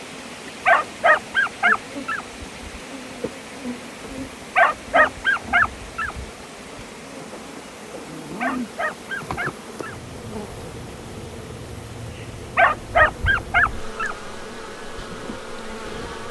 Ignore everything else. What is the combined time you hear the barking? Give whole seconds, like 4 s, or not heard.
6 s.